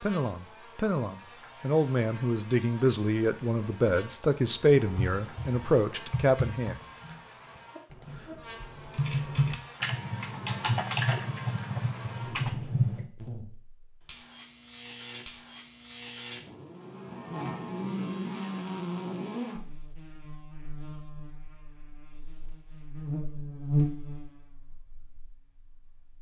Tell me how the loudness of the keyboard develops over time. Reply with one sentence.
The volume of the keyboard goes down, then up.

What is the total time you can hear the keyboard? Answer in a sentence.
You can hear the keyboard for 8 seconds altogether.